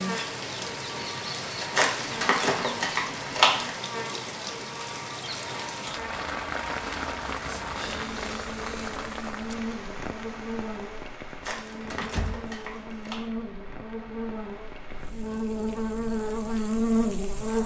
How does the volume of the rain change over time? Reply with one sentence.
The volume of the rain goes down.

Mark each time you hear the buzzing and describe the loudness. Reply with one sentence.
You can hear the buzzing from 0.0 to 17.6 s, getting louder.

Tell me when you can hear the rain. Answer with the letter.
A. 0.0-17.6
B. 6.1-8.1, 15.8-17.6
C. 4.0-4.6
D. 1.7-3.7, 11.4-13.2
A.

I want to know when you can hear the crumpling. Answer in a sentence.
You can hear the crumpling from 1.7 to 3.7 s and from 11.4 to 13.2 s.